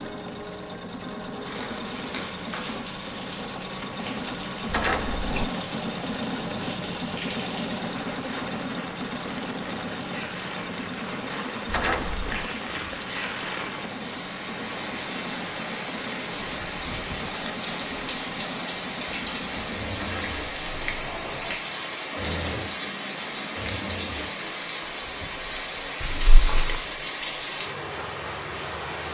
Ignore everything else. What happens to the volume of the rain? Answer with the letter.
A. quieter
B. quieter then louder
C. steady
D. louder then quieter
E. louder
E.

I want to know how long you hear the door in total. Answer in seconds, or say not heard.
3 s.